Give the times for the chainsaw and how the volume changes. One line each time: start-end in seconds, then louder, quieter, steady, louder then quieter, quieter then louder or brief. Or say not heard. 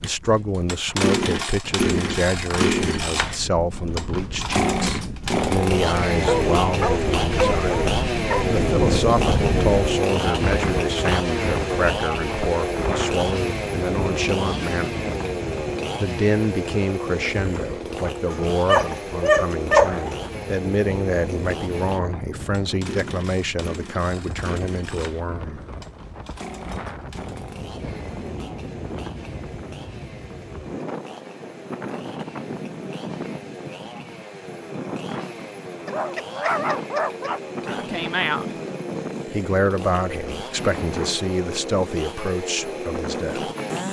0.0-43.8 quieter then louder.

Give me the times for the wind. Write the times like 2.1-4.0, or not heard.
0.0-43.8.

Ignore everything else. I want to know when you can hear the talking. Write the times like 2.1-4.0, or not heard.
0.0-7.8, 8.5-14.9, 16.0-25.6, 37.6-38.5, 39.2-43.5.